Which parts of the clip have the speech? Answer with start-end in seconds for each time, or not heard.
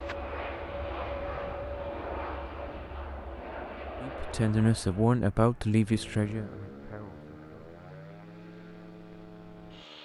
4.0-7.7.